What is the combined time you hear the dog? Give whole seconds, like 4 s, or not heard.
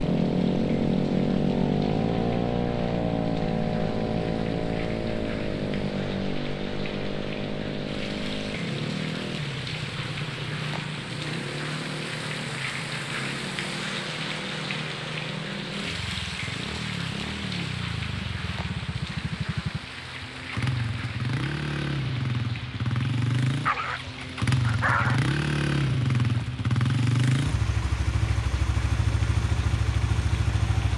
2 s.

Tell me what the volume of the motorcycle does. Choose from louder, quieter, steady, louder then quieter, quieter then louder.
quieter then louder.